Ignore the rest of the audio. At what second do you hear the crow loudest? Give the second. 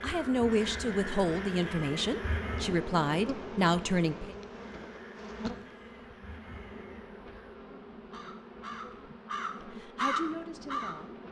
10 s.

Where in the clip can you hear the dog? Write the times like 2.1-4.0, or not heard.
not heard.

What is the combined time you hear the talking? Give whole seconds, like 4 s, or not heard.
6 s.